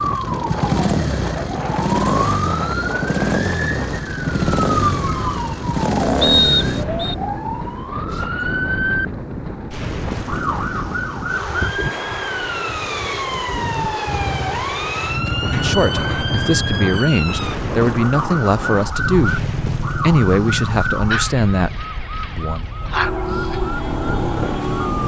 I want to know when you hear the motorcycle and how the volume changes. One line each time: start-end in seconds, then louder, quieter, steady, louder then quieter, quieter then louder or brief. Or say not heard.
0.0-6.8 steady
14.1-17.0 brief
19.0-25.0 quieter then louder.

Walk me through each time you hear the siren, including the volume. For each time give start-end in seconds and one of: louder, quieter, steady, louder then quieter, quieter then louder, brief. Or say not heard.
0.0-25.0 steady.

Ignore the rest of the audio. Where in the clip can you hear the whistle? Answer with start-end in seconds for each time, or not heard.
6.2-7.2.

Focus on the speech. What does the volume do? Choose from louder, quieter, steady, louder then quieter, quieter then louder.
steady.